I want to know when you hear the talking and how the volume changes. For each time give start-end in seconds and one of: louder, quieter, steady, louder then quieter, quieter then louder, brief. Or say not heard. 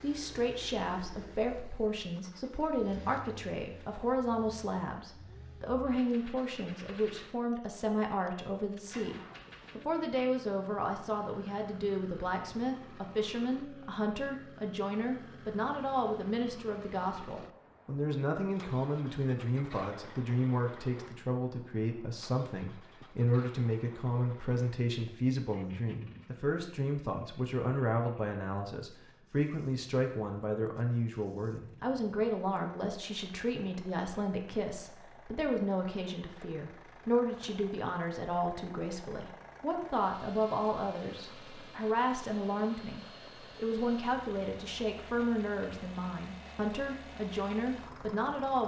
0.0-48.6 steady.